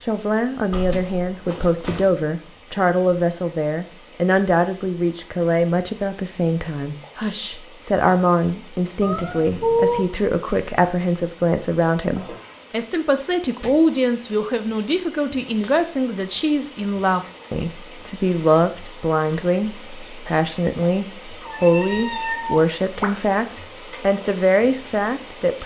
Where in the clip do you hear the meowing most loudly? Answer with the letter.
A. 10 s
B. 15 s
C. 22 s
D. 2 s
A.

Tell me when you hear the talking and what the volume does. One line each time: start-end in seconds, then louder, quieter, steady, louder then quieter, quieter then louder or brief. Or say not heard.
0.0-25.6 steady.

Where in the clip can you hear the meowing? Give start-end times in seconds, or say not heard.
0.7-2.1, 9.0-10.0, 21.4-23.1.